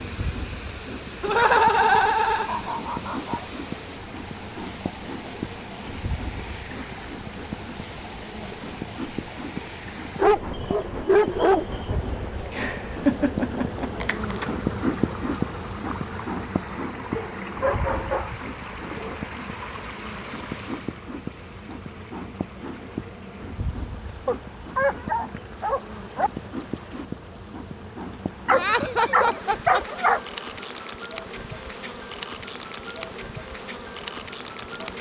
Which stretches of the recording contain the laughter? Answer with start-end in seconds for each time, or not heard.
1.2-2.5, 12.5-14.4, 28.5-29.8.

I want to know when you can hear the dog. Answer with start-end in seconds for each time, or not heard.
1.2-3.5, 10.2-12.0, 17.1-19.2, 24.2-26.3, 28.4-30.2.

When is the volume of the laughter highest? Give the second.
2 s.